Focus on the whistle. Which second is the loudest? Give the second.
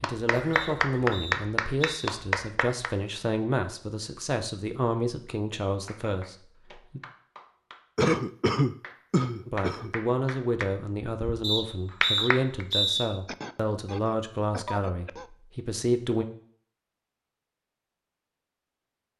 13 s.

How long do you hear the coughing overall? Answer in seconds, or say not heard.
5 s.